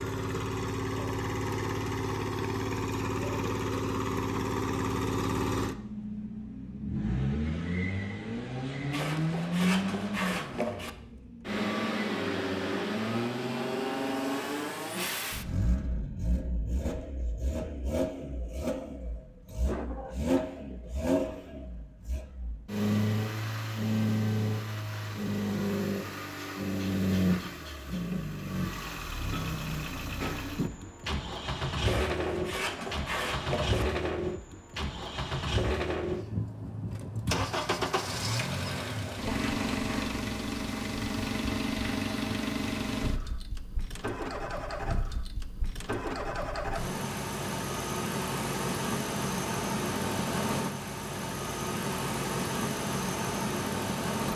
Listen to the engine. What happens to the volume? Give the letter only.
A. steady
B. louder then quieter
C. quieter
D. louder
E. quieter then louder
A.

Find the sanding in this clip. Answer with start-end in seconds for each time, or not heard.
8.9-10.9, 31.8-33.9, 38.6-40.1.